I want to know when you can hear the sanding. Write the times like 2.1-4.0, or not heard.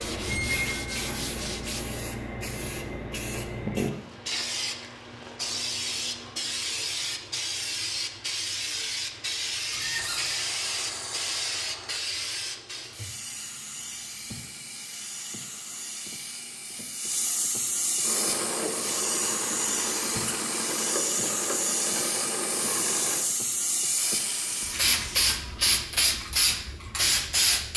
0.0-1.9, 9.9-12.0, 23.9-25.8.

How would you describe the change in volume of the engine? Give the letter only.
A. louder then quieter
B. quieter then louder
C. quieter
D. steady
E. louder
D.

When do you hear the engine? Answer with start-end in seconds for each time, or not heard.
18.0-23.2.